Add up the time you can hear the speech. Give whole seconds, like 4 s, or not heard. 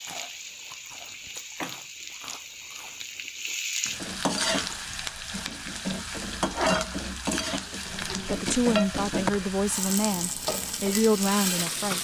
4 s.